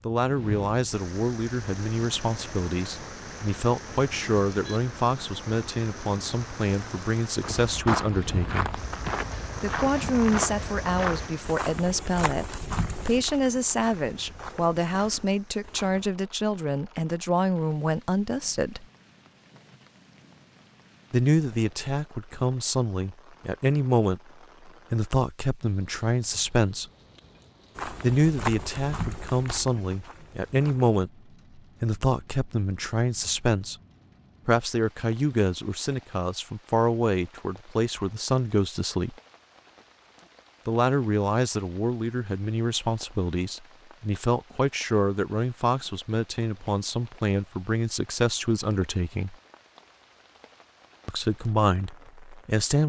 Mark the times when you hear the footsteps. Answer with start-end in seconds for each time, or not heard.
7.4-16.1, 27.8-31.0.